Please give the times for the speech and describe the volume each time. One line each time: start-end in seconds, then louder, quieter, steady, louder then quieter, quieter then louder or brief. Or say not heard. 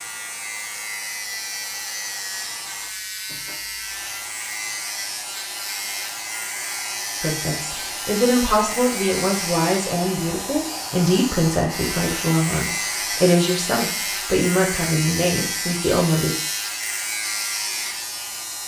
7.2-16.4 steady.